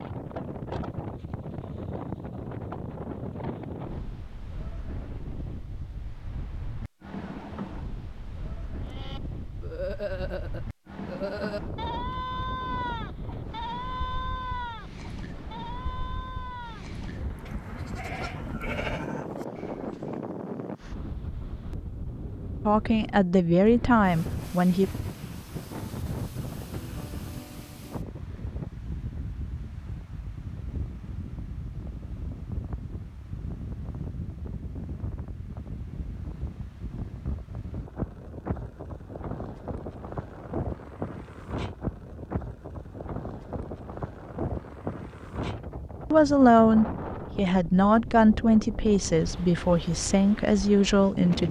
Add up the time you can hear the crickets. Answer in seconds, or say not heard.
not heard.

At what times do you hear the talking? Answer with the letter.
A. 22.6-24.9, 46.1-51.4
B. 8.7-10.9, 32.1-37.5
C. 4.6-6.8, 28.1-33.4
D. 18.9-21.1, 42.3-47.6
A.